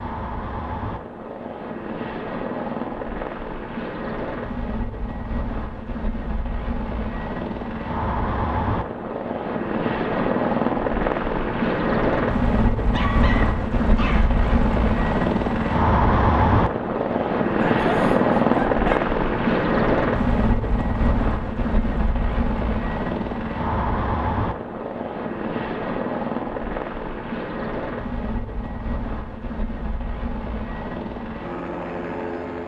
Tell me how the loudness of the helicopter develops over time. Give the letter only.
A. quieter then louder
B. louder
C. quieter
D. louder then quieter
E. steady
D.